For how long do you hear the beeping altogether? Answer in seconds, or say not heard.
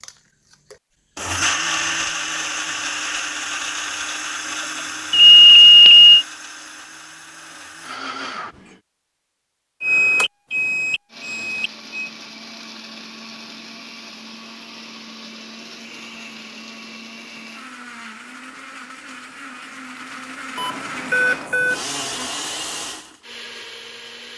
5 s.